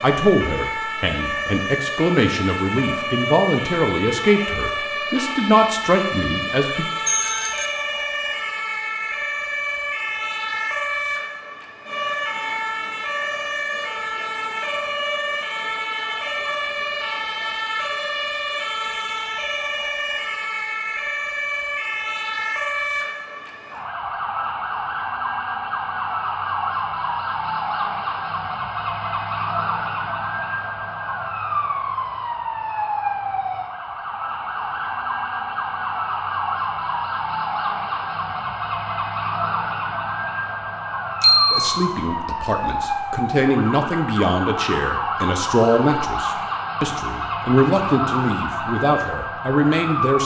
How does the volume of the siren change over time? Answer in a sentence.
The volume of the siren stays about the same.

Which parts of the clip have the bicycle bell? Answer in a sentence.
The bicycle bell can be heard from 7.0 to 7.7 s and from 41.2 to 41.6 s.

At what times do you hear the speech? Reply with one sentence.
The speech can be heard from 0.0 to 6.8 s and from 41.5 to 50.2 s.